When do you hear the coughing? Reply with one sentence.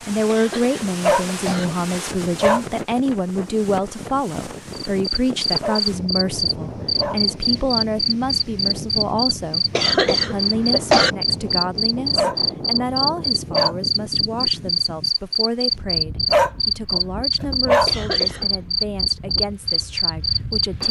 You can hear the coughing from 0.2 to 1.6 s, from 9.8 to 11.2 s and from 17.9 to 18.6 s.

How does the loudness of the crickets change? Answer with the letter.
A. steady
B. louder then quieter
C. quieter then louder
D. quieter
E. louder
A.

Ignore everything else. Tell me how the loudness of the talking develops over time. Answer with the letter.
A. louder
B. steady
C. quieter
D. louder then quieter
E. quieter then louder
C.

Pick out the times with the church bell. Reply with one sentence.
You can't hear the church bell here.